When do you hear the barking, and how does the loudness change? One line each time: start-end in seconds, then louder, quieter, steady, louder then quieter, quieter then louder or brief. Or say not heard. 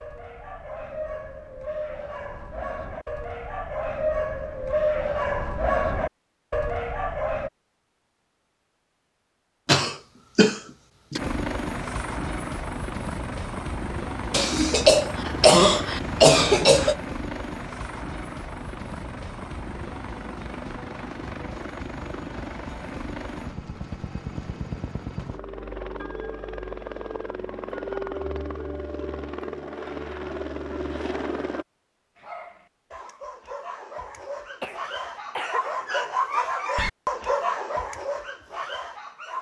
0.0-7.5 louder
32.1-39.3 louder then quieter.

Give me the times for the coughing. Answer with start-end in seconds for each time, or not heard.
9.7-11.2, 14.3-16.9, 34.6-35.6.